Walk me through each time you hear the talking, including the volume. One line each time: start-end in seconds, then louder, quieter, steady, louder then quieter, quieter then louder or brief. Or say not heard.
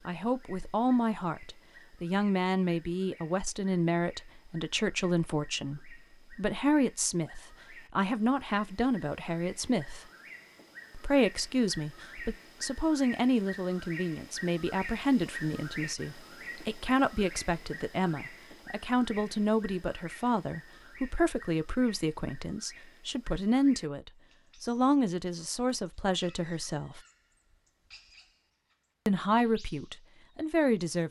0.1-10.1 steady
10.9-27.0 steady
29.1-31.0 brief.